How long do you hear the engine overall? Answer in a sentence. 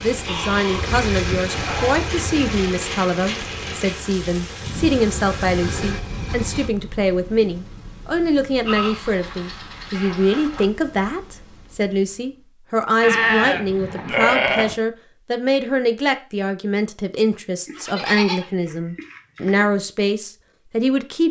The engine can be heard for 7 seconds in total.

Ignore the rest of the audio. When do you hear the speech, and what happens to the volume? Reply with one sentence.
The speech can be heard from 0.0 to 21.2 s, at a steady volume.